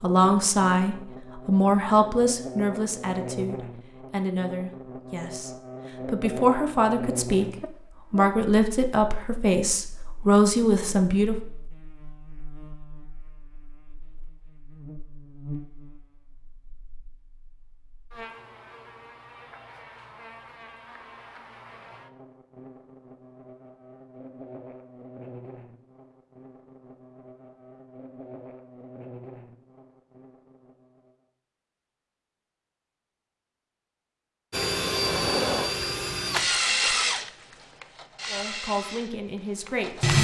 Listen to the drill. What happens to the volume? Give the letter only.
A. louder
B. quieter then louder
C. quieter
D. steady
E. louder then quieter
C.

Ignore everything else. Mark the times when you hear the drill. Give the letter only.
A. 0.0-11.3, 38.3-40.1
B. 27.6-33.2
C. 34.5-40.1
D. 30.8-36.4
C.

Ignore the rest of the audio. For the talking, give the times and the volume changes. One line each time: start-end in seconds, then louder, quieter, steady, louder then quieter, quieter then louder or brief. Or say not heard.
0.0-11.3 quieter then louder
38.3-40.1 brief.